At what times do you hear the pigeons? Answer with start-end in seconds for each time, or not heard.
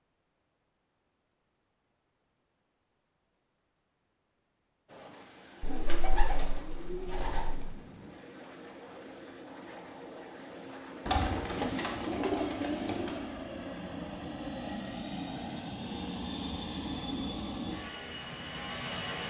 5.6-7.7, 11.1-13.2.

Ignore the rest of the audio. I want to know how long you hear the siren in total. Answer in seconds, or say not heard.
not heard.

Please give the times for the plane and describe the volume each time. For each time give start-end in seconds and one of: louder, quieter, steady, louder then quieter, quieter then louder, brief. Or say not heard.
4.8-19.2 louder.